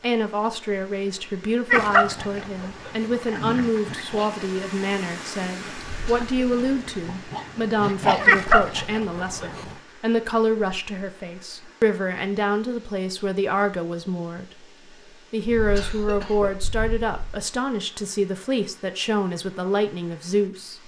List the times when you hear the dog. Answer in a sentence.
You can hear the dog from 1.7 to 9.8 s.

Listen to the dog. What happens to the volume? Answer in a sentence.
The loudness of the dog goes down, then up.